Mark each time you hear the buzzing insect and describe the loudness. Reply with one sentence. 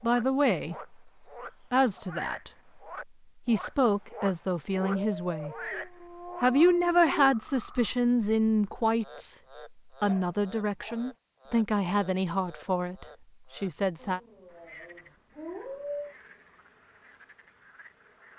You can't hear the buzzing insect here.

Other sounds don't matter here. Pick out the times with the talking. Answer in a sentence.
The talking can be heard from 0.0 to 0.9 s, from 1.7 to 2.5 s, from 3.5 to 5.5 s, from 6.4 to 9.3 s and from 10.0 to 14.2 s.